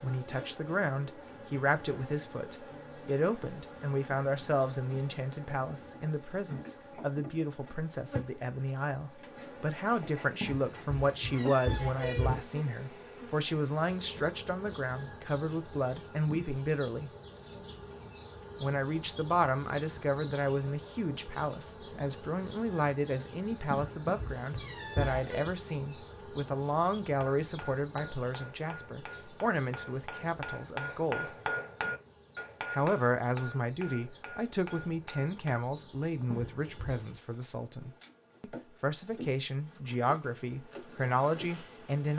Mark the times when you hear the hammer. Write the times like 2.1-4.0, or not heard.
27.1-35.6.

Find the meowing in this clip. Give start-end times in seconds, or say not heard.
10.4-12.4, 23.7-25.6, 36.3-37.0.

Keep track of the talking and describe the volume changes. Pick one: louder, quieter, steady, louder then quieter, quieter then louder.
steady.